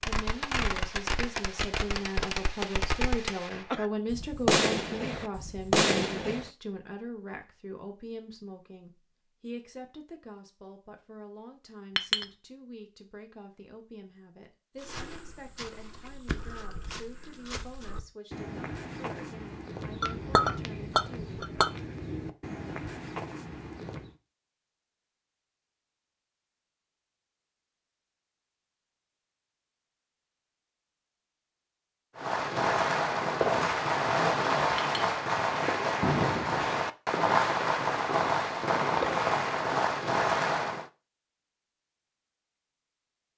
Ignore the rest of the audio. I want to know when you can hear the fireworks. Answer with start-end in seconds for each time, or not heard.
0.0-6.5, 32.1-40.9.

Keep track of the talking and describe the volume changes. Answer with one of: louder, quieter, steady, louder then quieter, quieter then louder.
quieter.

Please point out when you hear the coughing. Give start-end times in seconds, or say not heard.
not heard.